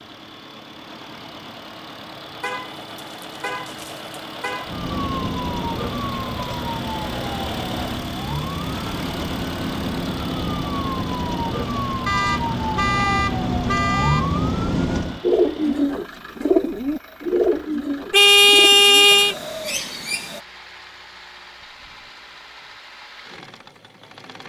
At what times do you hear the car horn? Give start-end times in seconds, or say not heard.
2.4-4.8, 12.1-14.3, 18.1-19.4.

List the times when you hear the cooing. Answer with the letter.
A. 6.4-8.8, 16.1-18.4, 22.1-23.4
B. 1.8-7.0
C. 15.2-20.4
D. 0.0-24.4
C.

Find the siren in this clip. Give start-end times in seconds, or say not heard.
4.7-15.2.